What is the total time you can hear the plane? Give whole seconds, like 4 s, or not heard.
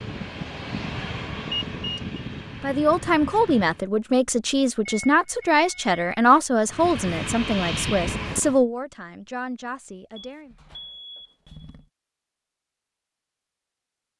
6 s.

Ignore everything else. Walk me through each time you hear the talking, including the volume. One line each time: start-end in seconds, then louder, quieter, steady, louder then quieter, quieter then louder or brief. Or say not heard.
2.6-10.6 quieter.